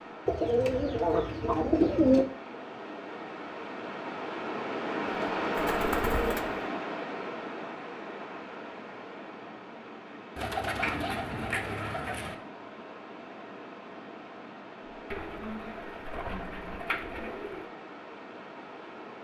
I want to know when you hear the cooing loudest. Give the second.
2 s.